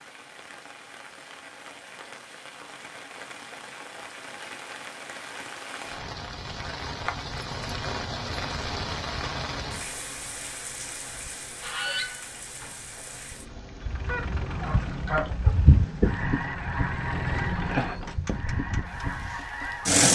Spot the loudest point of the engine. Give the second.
20 s.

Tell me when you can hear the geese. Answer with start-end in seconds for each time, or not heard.
11.1-20.1.